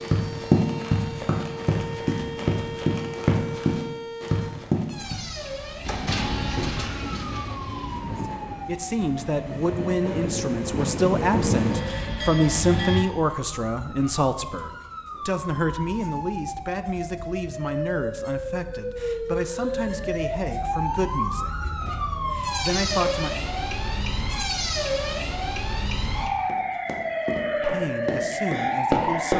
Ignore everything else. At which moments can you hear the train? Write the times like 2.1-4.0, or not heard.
5.8-13.1.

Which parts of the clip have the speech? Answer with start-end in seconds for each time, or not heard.
8.7-23.3, 27.6-29.3.